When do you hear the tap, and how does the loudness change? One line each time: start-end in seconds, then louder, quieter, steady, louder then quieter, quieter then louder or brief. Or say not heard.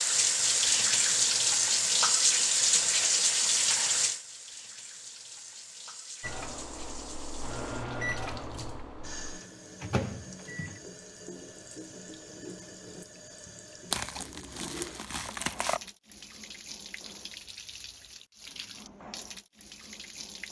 0.0-20.4 quieter.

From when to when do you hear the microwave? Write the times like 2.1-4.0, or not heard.
6.2-10.8.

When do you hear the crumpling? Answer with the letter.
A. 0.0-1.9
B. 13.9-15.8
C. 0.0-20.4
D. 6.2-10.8
B.